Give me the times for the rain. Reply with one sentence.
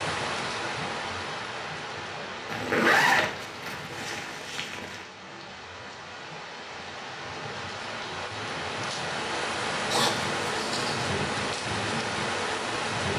You can hear the rain from 0.0 to 13.1 s.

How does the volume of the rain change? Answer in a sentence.
The loudness of the rain goes down, then up.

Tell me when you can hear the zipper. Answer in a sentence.
You can hear the zipper from 2.5 to 5.0 s and from 9.8 to 11.2 s.